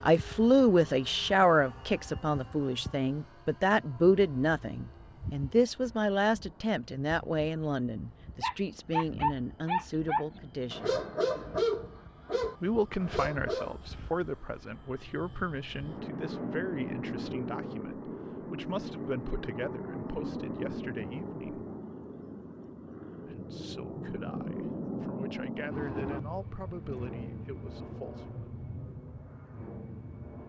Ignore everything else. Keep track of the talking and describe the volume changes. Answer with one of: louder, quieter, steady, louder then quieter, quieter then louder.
quieter.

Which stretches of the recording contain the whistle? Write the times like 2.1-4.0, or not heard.
not heard.